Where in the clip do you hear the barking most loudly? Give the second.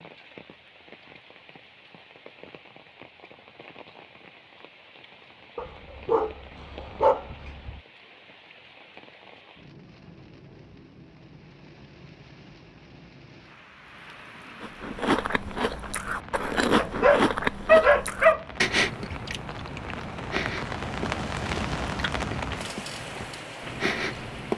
18 s.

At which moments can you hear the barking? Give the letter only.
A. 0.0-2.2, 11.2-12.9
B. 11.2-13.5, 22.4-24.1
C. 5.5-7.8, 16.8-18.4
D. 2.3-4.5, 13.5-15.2
C.